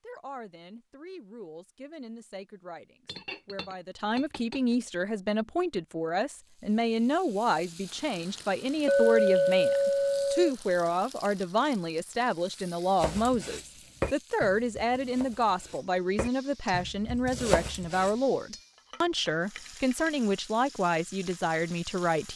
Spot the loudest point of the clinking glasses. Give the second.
9 s.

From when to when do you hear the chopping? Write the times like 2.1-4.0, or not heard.
13.0-18.1.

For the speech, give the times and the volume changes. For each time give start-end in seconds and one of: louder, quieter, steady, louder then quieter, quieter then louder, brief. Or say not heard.
0.0-22.3 louder.